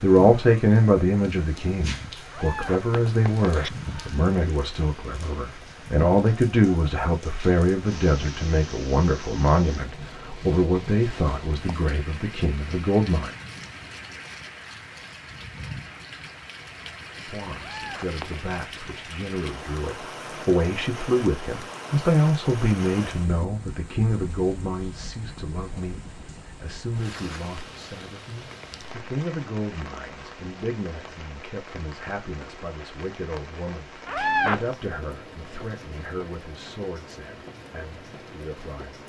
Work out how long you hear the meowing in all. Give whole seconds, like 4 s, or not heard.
3 s.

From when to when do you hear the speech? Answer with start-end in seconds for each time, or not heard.
0.0-13.3, 17.2-39.0.